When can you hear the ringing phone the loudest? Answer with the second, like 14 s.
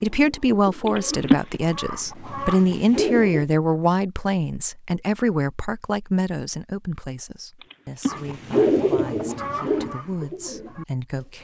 1 s.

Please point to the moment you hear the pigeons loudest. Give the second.
9 s.